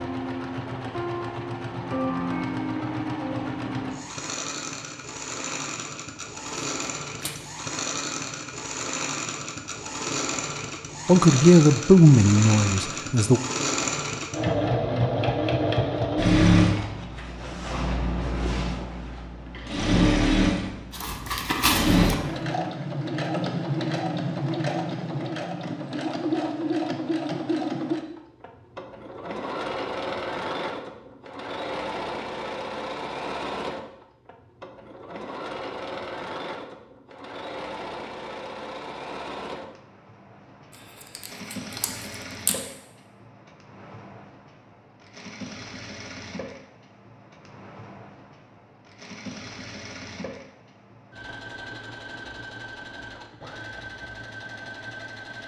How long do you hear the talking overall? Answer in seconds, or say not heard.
2 s.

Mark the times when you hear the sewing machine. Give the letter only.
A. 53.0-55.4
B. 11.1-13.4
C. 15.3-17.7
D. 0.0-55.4
D.